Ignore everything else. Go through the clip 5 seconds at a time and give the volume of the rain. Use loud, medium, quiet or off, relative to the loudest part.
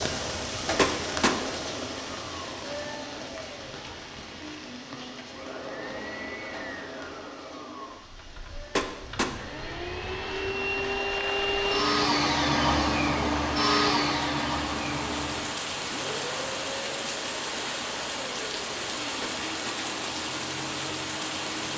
loud, quiet, medium, loud, loud.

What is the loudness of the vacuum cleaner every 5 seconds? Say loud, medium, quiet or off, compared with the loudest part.
quiet, quiet, loud, quiet, quiet.